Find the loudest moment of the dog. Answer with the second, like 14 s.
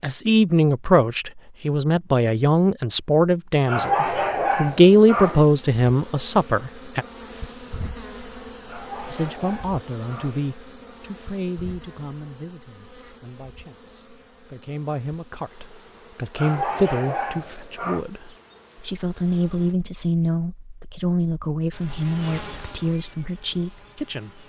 4 s.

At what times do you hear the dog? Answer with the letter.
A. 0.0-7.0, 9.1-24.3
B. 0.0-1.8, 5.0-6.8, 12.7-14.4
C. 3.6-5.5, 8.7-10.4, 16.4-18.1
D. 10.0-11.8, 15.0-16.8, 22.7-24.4
C.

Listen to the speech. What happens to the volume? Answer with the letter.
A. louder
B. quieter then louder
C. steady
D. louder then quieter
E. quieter
B.